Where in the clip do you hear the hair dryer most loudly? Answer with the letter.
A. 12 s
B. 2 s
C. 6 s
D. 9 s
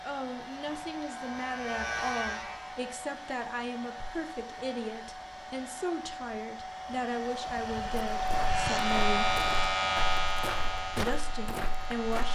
D.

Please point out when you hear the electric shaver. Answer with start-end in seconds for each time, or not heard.
0.1-2.9, 8.4-12.2.